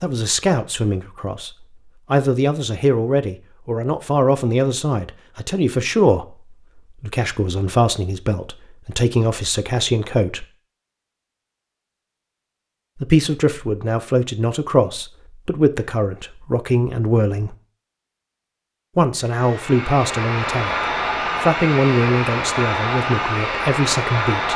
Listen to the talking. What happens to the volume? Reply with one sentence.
The volume of the talking stays about the same.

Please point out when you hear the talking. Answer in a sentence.
The talking can be heard from 0.0 to 10.4 s, from 12.9 to 17.6 s and from 18.9 to 24.5 s.